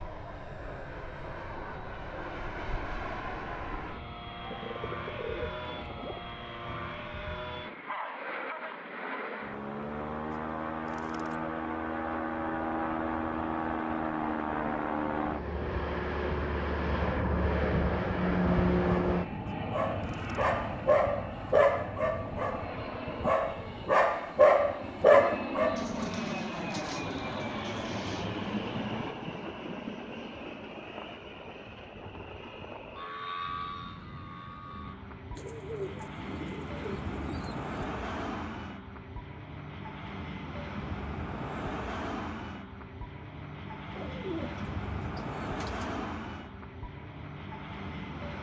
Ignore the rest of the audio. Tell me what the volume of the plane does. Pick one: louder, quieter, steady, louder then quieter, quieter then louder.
louder then quieter.